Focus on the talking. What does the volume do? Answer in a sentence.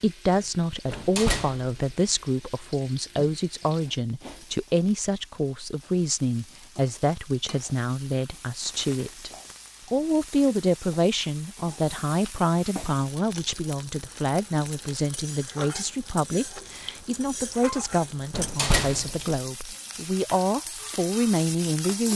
The loudness of the talking stays about the same.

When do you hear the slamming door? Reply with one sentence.
You can hear the slamming door from 0.9 to 1.9 s and from 18.3 to 19.4 s.